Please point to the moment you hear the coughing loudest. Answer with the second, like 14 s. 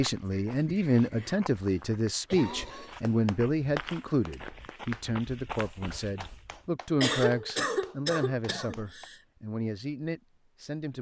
7 s.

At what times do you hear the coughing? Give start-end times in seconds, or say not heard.
0.3-3.0, 7.0-9.2.